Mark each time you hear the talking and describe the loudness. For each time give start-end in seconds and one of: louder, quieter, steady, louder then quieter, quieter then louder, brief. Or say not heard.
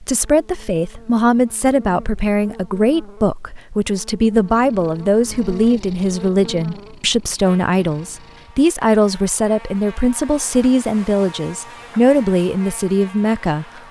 0.0-13.8 steady.